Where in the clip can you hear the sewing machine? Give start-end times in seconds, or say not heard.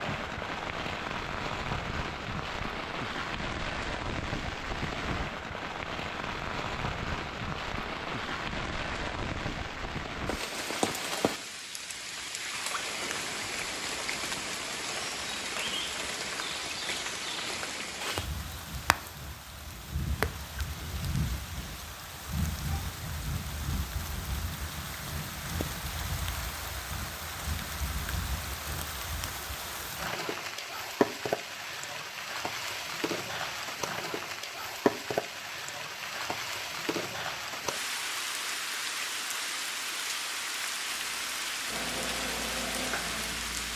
40.9-43.7.